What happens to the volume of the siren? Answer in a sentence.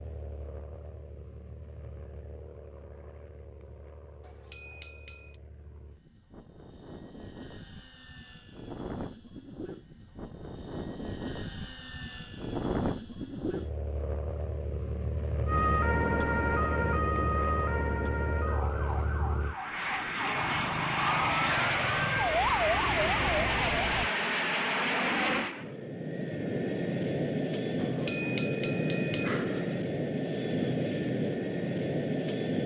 The volume of the siren goes down, then up.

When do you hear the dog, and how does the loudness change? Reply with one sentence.
You can't hear the dog here.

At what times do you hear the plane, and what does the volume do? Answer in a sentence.
You can hear the plane from 0.0 to 32.6 s, getting louder.